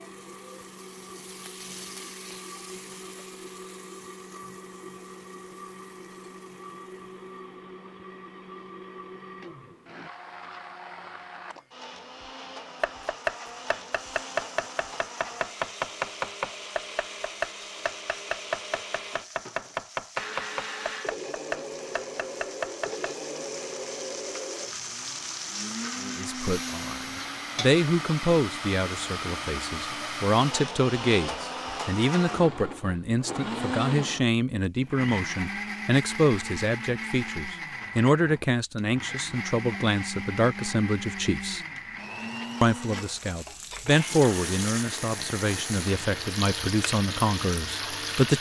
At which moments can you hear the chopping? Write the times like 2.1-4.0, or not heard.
12.8-23.1.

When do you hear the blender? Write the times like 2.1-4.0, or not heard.
0.0-48.3.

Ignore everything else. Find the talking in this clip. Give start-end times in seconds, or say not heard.
26.0-41.6, 42.6-48.3.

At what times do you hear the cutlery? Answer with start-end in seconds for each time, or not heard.
not heard.